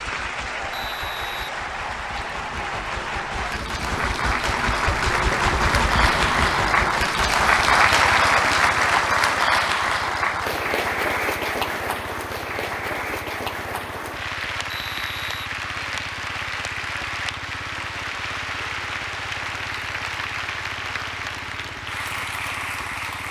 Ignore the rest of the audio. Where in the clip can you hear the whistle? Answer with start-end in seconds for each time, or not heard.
0.7-1.5, 14.7-16.0.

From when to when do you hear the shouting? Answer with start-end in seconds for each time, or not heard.
not heard.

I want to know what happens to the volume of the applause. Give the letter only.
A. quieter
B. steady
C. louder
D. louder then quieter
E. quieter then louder
D.